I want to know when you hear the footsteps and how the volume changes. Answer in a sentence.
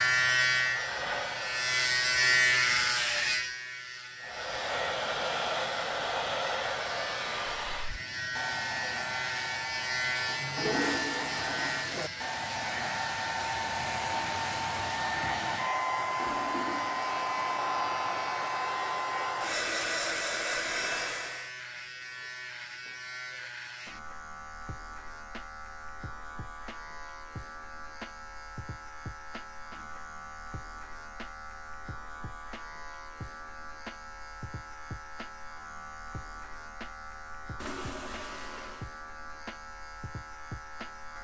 The footsteps can't be heard in this clip.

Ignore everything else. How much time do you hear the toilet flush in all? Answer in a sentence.
You can hear the toilet flush for 5 seconds altogether.